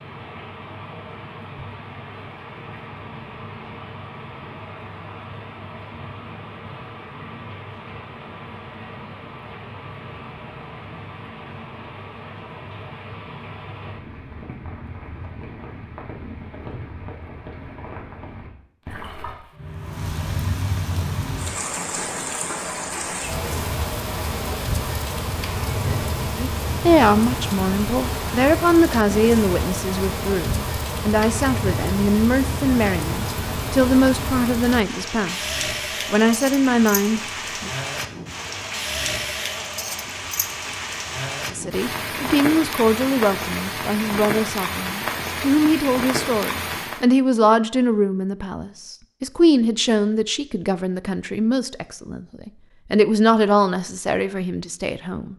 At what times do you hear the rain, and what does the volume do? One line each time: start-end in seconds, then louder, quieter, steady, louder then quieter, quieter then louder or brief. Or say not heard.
0.0-47.0 louder.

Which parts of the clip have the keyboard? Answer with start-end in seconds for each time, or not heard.
not heard.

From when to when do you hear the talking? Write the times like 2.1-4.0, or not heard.
26.4-37.7, 41.5-55.3.